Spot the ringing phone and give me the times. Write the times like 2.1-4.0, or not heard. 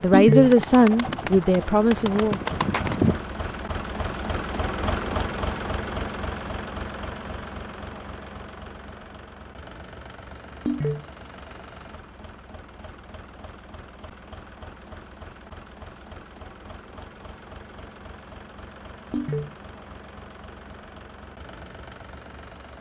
0.1-0.6, 10.7-11.1, 19.1-19.6.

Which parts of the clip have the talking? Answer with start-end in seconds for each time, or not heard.
0.0-2.4.